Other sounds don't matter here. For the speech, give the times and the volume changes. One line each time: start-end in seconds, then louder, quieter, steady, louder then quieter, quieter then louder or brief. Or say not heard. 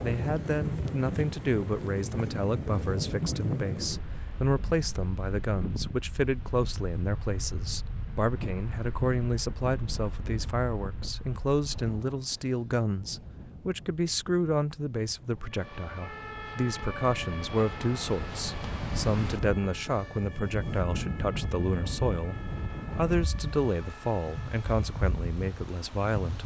0.0-26.4 steady.